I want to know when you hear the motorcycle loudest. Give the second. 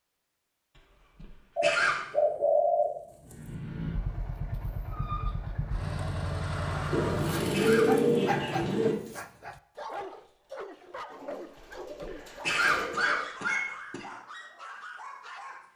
7 s.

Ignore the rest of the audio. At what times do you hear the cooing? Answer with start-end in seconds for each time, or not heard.
1.6-3.5, 6.9-8.9, 11.1-13.3.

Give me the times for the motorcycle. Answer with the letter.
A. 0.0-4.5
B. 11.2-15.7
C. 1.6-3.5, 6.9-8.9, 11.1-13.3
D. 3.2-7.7
D.